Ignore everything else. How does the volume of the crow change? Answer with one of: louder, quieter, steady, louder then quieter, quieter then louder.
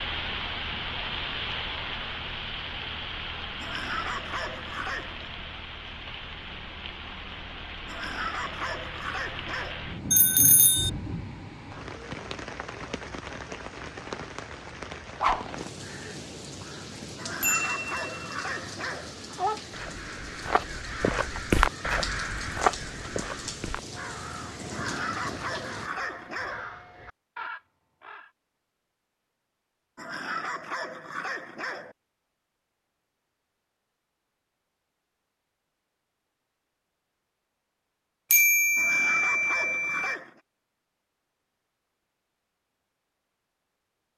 louder then quieter.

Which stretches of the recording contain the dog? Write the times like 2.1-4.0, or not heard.
3.5-5.3, 7.8-9.8, 17.1-19.1, 24.7-26.6, 29.9-31.9, 38.8-40.4.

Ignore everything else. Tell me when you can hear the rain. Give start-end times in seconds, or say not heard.
0.0-25.9.